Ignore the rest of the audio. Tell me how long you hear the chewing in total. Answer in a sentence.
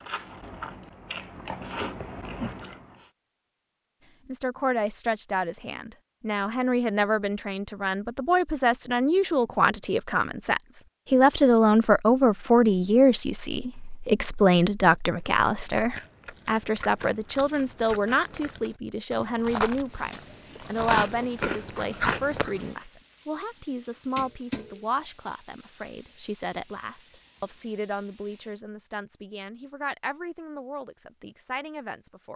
You can hear the chewing for 10 seconds altogether.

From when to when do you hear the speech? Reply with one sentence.
The speech can be heard from 4.2 to 32.3 s.